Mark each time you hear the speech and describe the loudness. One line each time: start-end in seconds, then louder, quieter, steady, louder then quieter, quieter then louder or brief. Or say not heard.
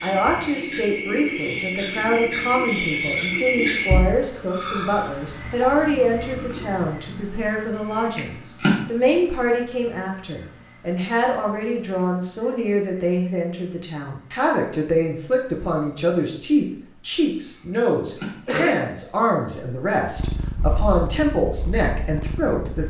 0.0-22.8 steady.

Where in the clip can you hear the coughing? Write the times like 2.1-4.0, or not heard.
18.4-18.9.